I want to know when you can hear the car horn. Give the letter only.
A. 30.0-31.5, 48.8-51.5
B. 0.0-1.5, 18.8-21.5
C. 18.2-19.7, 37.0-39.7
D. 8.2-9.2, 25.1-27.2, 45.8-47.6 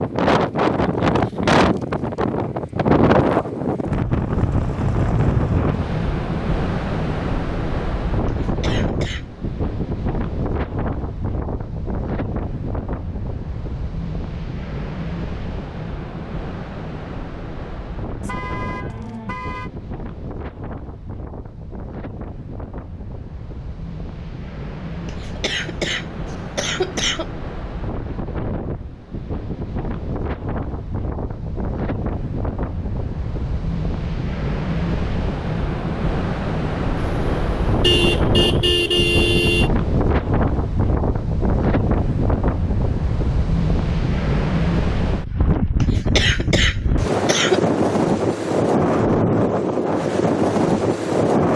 C.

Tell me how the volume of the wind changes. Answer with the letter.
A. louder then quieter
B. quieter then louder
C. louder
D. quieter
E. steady
B.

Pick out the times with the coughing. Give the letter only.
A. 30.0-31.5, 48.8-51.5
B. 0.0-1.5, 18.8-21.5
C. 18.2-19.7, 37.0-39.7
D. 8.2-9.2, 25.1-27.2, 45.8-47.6
D.